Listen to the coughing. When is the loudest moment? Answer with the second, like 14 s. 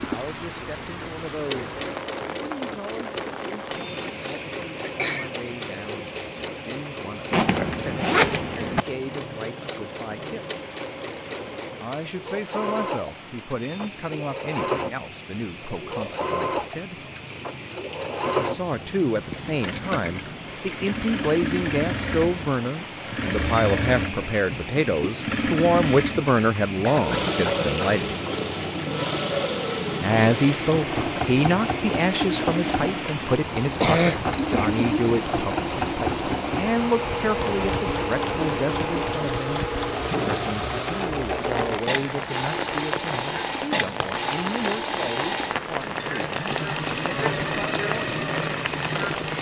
34 s.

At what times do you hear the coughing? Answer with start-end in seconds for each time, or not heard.
4.0-5.3, 26.8-27.9, 33.8-34.9.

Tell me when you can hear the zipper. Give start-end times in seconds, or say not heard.
7.3-8.8.